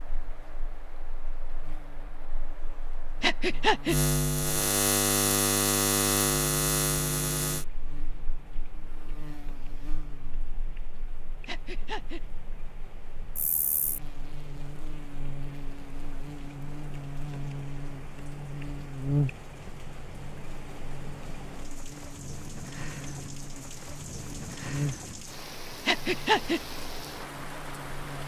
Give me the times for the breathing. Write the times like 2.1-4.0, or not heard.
3.2-4.0, 11.4-12.2, 25.9-26.6.